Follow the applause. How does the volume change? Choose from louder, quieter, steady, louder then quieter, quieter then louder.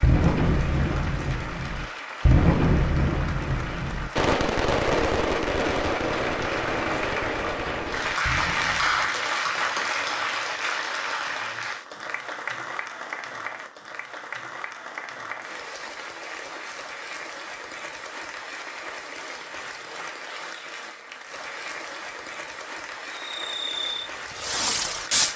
louder then quieter.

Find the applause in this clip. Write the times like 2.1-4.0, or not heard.
0.0-25.3.